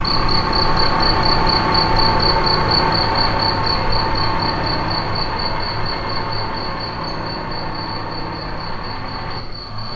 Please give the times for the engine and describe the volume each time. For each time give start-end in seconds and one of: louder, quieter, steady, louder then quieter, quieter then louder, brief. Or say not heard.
0.0-9.9 quieter.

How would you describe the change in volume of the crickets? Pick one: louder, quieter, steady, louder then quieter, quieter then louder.
quieter.